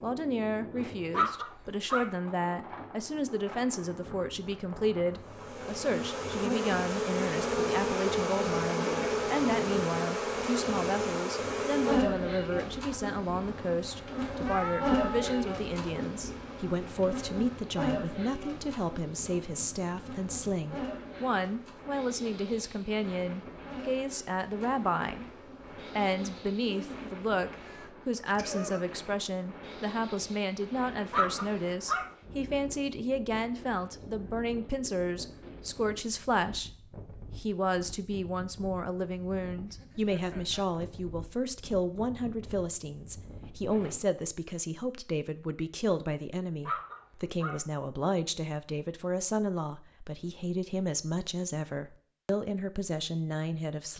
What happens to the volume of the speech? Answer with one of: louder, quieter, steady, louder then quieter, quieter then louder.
steady.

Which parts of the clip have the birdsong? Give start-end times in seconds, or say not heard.
not heard.